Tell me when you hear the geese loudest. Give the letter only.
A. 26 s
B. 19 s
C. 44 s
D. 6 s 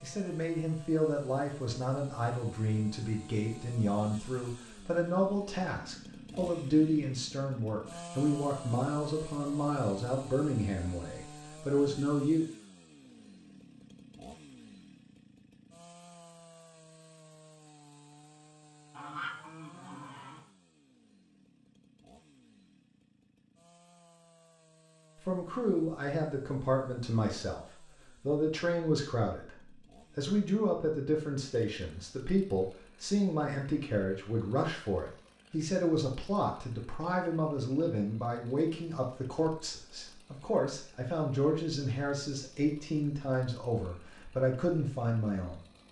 B.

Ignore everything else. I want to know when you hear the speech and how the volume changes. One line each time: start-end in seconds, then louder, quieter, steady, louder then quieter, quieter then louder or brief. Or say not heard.
0.0-12.4 steady
25.2-27.6 brief
28.2-45.6 steady.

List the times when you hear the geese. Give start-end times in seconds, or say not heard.
18.9-20.4.